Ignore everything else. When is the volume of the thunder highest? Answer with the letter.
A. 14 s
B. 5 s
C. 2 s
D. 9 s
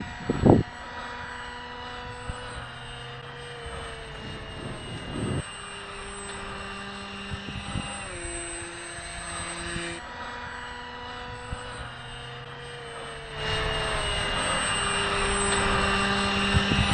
B.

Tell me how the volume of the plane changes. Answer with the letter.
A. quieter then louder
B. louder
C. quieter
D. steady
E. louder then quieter
A.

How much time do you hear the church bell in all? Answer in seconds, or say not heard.
not heard.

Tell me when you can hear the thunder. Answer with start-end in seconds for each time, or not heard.
3.6-5.5.